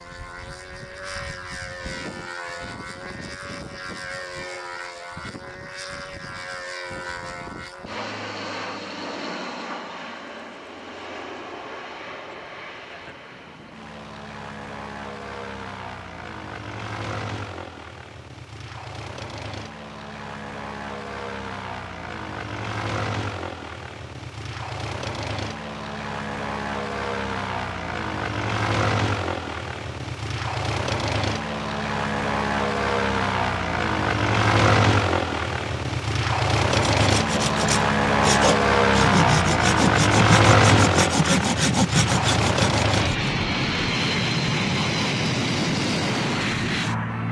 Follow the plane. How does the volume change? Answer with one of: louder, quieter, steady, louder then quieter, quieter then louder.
louder.